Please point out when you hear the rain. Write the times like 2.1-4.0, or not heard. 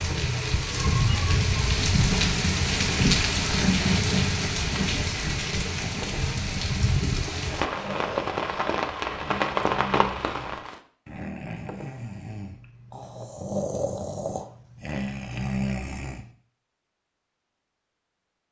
0.0-10.8.